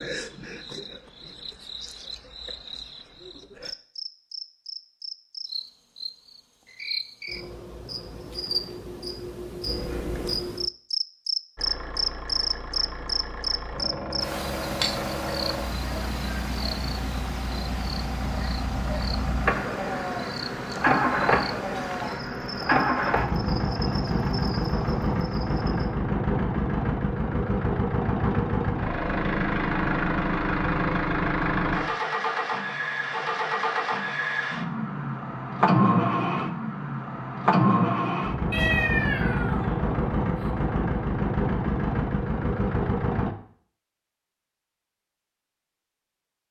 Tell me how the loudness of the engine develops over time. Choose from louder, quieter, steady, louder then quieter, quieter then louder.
louder.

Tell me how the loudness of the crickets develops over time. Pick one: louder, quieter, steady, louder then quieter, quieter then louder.
louder then quieter.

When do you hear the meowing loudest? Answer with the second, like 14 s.
39 s.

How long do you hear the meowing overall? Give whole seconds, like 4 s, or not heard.
3 s.